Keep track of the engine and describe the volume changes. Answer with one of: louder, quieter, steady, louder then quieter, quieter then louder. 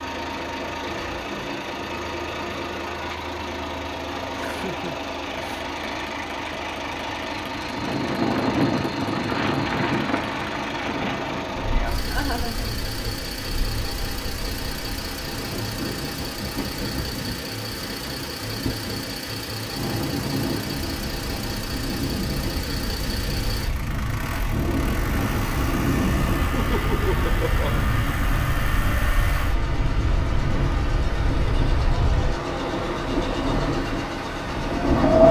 steady.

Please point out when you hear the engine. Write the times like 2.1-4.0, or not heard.
0.0-35.2.